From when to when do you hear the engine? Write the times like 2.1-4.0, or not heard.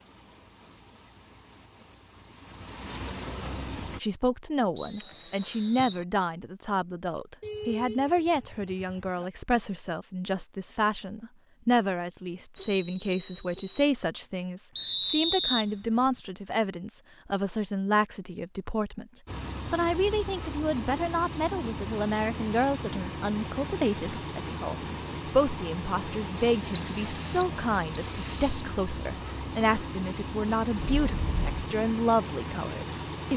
0.0-4.0, 19.2-33.3.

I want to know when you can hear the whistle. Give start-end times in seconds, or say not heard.
4.8-6.0, 14.8-16.1, 26.7-28.6.